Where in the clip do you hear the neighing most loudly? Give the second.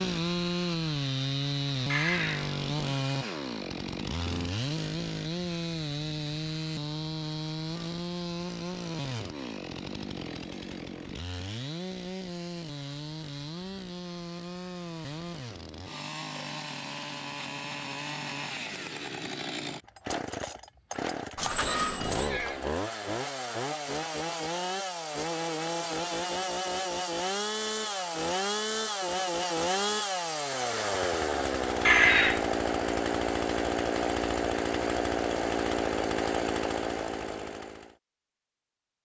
32 s.